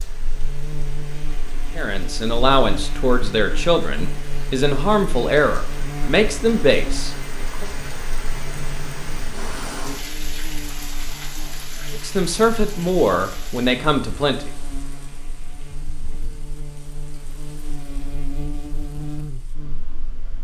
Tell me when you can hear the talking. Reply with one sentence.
The talking can be heard from 1.8 to 7.7 s and from 11.9 to 14.4 s.